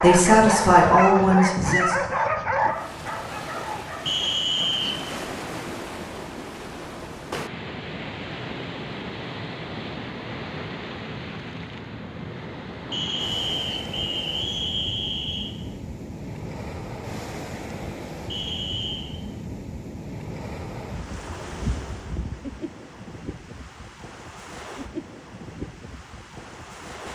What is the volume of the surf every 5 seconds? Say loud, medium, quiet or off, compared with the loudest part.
loud, loud, loud, loud, loud, medium.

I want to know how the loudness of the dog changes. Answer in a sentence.
The loudness of the dog goes down.